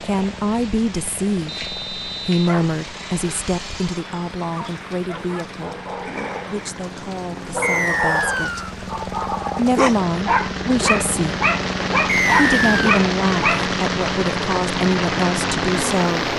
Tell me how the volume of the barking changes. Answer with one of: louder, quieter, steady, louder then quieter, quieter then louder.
louder.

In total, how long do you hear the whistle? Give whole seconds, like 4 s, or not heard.
3 s.